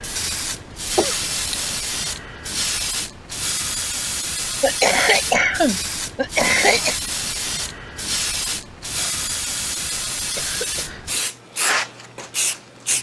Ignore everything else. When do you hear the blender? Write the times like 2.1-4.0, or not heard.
not heard.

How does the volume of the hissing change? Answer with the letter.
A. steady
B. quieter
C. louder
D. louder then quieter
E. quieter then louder
A.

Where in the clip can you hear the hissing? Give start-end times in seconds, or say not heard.
0.0-12.9.